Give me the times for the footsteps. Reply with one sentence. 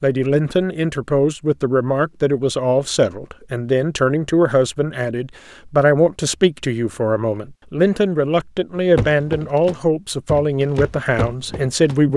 The footsteps can be heard from 8.8 to 12.0 s.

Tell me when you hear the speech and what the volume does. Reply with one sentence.
The speech can be heard from 0.0 to 12.1 s, at a steady volume.